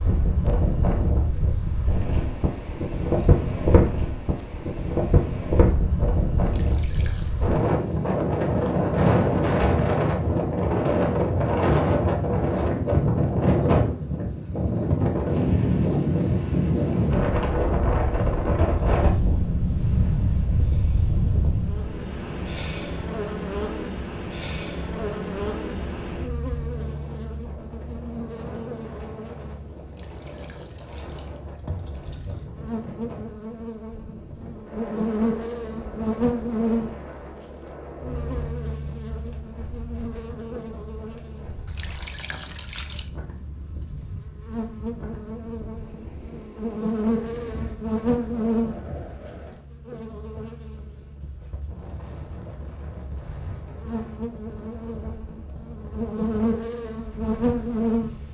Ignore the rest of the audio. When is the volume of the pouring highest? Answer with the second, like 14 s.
42 s.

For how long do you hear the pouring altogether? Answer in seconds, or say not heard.
5 s.